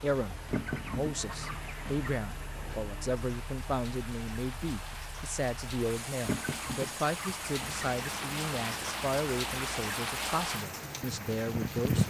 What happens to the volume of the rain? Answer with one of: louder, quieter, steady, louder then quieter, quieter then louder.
louder.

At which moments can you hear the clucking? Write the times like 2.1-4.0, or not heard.
0.5-2.2, 6.2-7.9.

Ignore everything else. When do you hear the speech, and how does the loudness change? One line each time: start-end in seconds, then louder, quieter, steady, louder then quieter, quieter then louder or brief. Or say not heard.
0.0-12.0 steady.